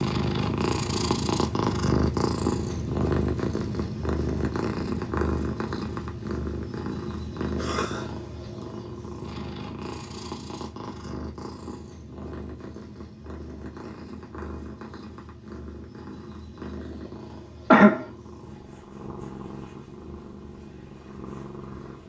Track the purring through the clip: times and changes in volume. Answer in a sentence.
You can hear the purring from 0.0 to 22.0 s, getting quieter.